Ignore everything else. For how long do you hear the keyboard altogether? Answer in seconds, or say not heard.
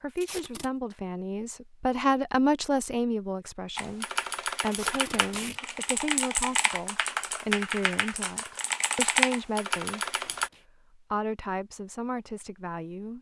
7 s.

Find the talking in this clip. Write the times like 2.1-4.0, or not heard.
0.0-10.1, 10.9-13.1.